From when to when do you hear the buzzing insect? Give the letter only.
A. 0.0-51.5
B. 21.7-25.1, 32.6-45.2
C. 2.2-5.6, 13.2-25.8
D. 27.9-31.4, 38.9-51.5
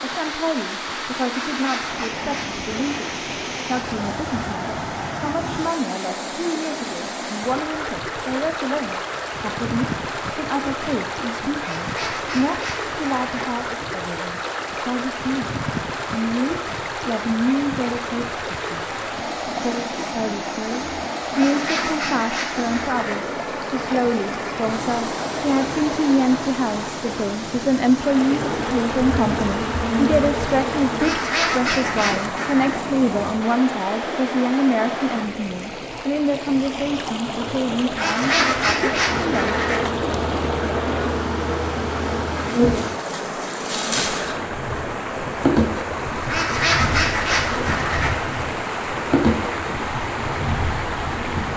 D.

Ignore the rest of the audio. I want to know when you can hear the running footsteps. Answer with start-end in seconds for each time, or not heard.
not heard.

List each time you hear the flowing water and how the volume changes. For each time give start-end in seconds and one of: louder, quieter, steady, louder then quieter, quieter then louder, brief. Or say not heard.
0.0-51.5 steady.